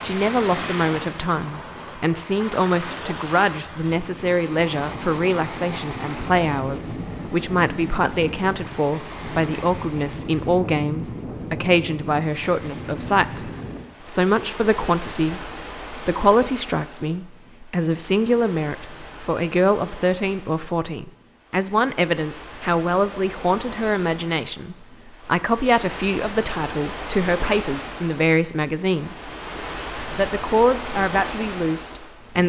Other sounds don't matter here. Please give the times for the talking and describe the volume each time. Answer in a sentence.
You can hear the talking from 0.0 to 29.2 s, at a steady volume; and briefly from 30.1 to 32.4 s.